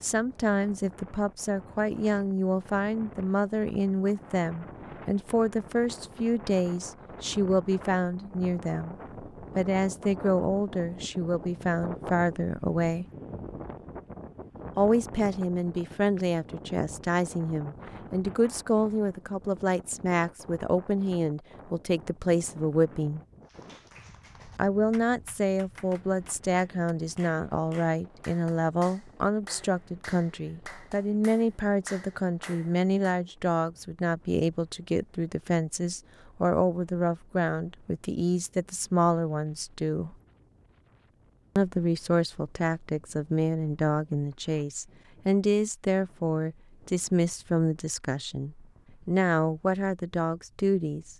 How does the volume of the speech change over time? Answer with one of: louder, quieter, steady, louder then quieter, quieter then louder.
steady.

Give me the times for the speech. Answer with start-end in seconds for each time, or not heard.
0.0-8.9, 9.6-13.1, 14.8-23.2, 24.6-40.1, 41.5-51.1.